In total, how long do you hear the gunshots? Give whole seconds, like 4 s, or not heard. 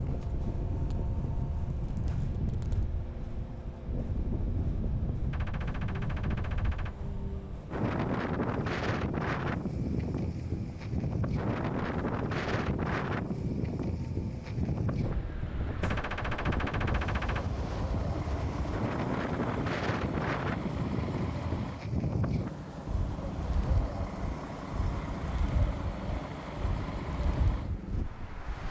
3 s.